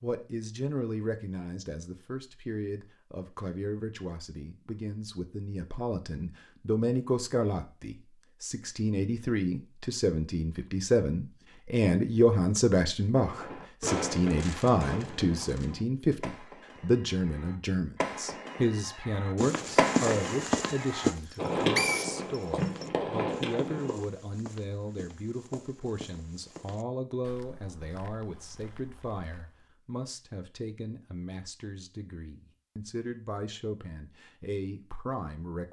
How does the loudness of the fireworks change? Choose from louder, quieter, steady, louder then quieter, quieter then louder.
quieter then louder.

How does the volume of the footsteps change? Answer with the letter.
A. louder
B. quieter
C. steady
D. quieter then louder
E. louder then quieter
B.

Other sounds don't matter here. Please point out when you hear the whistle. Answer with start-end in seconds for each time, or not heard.
21.2-22.9.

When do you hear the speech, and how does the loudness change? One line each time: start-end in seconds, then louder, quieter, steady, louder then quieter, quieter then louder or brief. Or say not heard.
0.0-35.6 louder then quieter.